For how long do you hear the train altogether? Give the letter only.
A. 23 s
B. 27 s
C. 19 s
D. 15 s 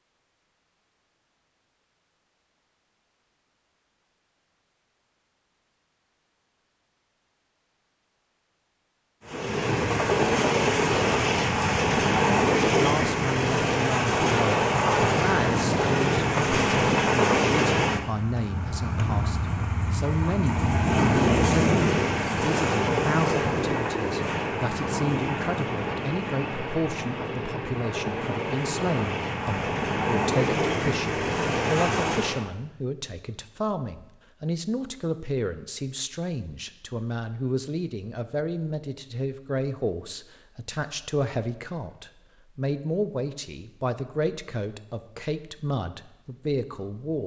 A.